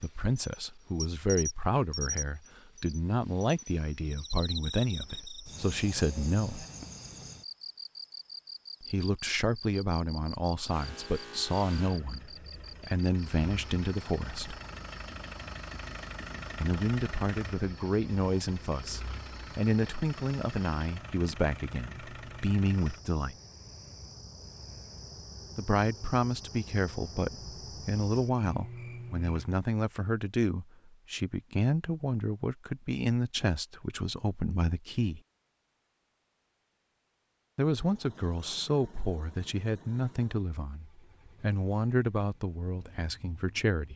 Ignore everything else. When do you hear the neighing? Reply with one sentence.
You can't hear the neighing here.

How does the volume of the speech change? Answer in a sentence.
The volume of the speech stays about the same.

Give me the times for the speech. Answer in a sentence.
The speech can be heard from 0.0 to 6.7 s, from 8.8 to 14.6 s, from 16.6 to 23.4 s, from 25.6 to 35.2 s and from 37.5 to 43.9 s.